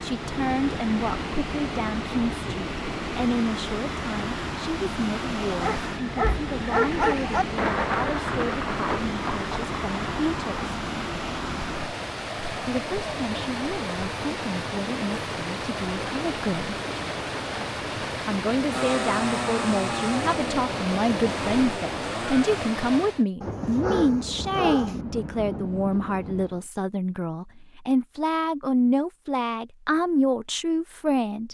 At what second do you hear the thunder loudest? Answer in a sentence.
The volume of the thunder peaks at 8 seconds.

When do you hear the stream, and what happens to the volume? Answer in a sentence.
You can hear the stream from 0.0 to 23.2 s, at a steady volume.